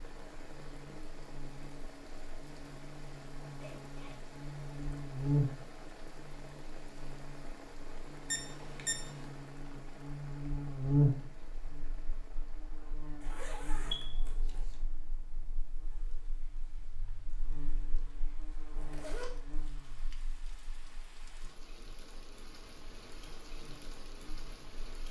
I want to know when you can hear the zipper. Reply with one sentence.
The zipper can be heard from 3.6 to 4.3 s, from 13.2 to 14.7 s and from 18.7 to 19.3 s.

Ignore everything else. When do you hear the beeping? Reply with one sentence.
You can hear the beeping from 8.3 to 9.3 s and from 13.9 to 14.8 s.